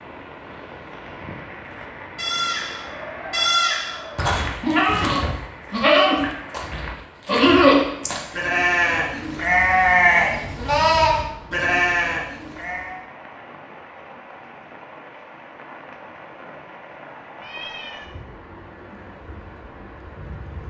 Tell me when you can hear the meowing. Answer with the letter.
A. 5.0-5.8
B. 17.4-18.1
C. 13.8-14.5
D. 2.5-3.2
B.